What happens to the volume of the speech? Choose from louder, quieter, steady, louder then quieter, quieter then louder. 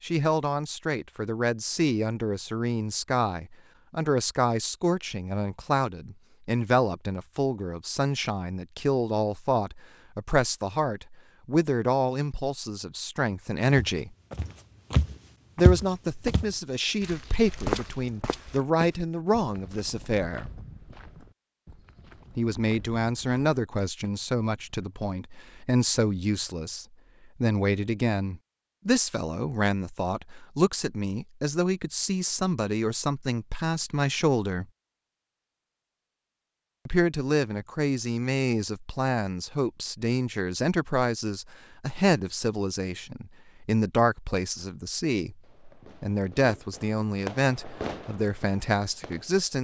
steady.